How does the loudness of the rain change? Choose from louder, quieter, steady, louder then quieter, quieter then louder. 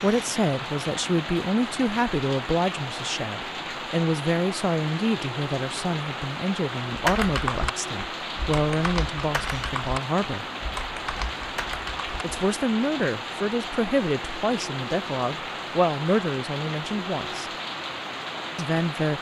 steady.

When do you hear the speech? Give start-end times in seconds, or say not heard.
0.0-10.4, 12.2-17.5, 18.6-19.1.